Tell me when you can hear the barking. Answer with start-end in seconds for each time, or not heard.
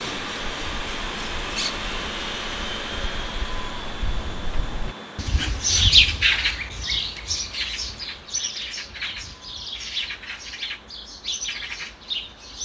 not heard.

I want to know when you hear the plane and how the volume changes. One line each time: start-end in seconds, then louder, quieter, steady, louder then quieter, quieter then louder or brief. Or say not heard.
0.0-12.5 quieter.